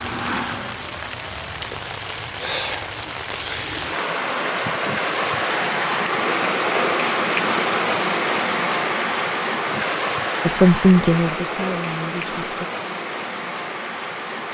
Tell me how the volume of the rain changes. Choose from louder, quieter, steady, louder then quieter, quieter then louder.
louder then quieter.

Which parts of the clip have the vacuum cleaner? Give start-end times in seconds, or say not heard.
0.0-1.7.